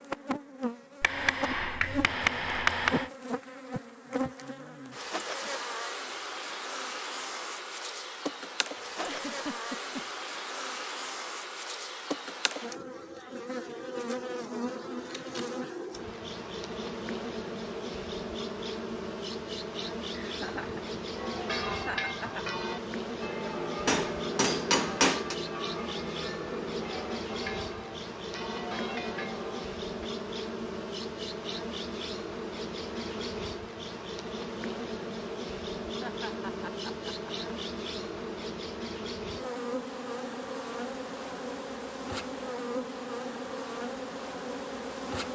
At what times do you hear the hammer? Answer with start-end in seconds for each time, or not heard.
1.0-3.1, 23.9-25.4.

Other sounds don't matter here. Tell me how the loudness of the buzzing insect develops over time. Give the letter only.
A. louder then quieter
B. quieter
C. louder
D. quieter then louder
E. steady
E.